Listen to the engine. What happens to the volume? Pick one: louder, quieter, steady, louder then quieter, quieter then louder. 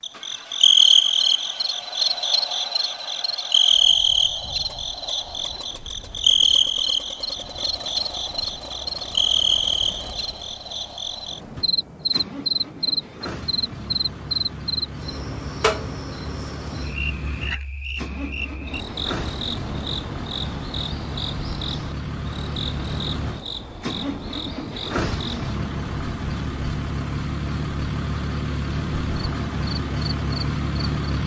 louder.